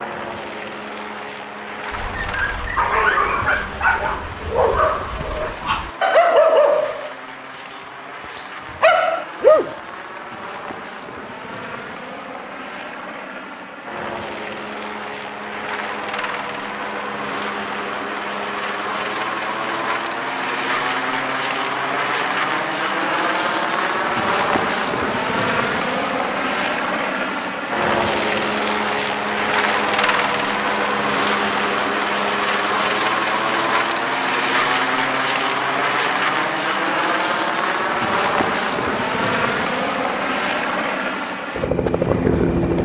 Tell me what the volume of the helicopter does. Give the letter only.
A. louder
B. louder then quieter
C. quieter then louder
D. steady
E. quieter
A.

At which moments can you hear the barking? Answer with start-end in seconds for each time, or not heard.
1.9-10.2.